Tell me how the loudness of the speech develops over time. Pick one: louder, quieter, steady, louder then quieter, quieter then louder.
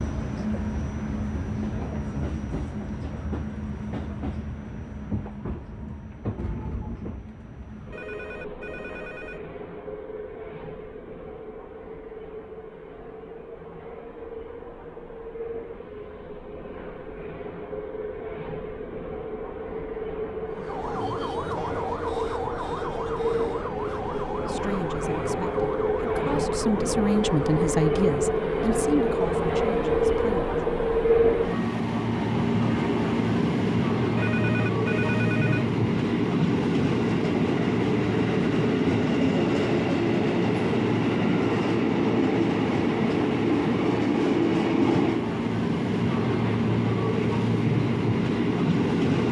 louder then quieter.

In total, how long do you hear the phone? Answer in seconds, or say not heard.
3 s.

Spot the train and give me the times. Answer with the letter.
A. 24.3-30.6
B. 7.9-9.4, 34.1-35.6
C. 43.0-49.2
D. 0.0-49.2
D.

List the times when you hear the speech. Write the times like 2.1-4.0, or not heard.
24.3-30.6.